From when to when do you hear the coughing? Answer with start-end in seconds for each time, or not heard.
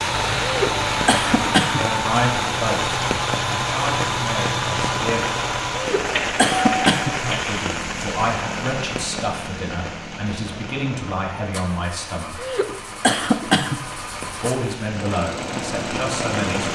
0.4-1.9, 5.8-7.2, 12.3-13.8.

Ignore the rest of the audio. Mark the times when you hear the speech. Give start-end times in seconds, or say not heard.
1.8-5.2, 7.2-12.4, 14.4-16.7.